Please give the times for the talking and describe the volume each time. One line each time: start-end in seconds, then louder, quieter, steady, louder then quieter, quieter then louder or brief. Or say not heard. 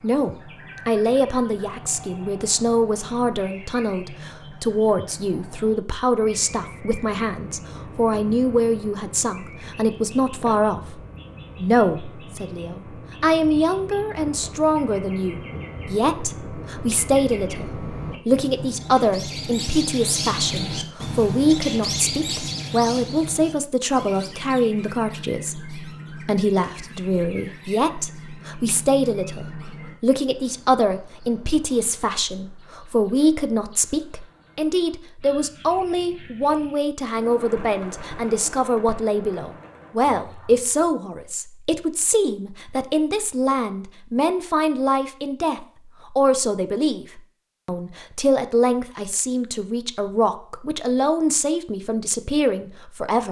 0.0-10.9 steady
11.6-53.2 steady.